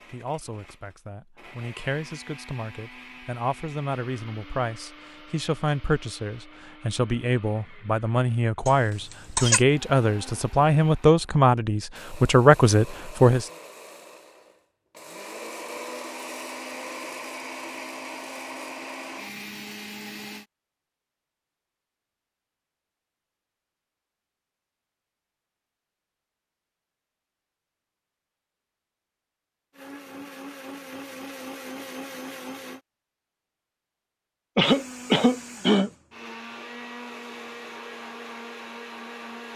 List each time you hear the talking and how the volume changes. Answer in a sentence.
You can hear the talking from 0.1 to 13.4 s, getting louder.